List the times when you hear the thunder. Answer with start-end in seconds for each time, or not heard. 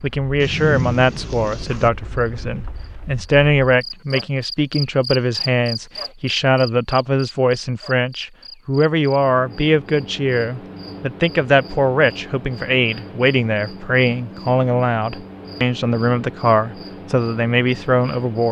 0.4-1.9.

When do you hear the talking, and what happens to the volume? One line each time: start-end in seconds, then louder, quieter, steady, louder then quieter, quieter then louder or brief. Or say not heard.
0.0-18.4 steady.